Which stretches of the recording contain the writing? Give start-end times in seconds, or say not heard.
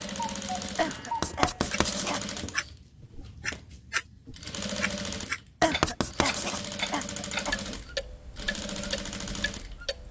1.2-2.2, 5.6-6.6.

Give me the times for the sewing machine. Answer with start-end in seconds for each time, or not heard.
0.0-10.0.